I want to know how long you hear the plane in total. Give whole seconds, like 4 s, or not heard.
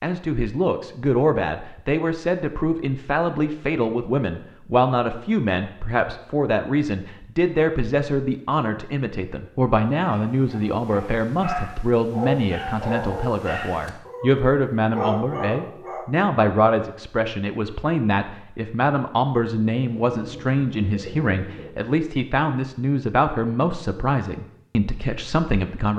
not heard.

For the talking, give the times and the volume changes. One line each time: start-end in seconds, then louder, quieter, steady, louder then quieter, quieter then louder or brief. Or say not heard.
0.0-25.9 steady.